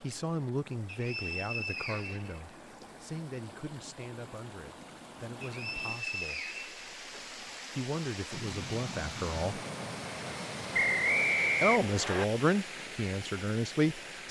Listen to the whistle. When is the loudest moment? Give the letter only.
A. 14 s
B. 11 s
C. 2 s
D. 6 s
B.